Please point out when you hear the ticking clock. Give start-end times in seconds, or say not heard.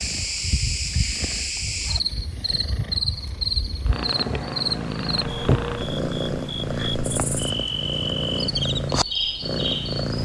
not heard.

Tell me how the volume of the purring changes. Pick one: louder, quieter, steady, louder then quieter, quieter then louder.
louder.